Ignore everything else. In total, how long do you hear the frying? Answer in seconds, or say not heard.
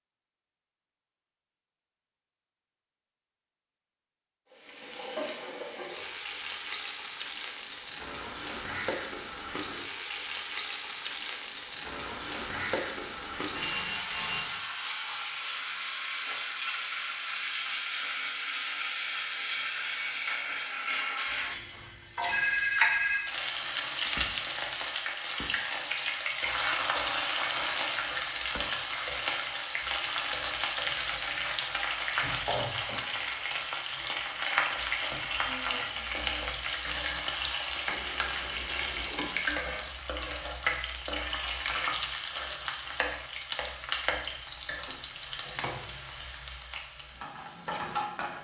44 s.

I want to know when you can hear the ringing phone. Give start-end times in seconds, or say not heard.
13.5-14.6, 21.2-23.2, 37.9-39.5.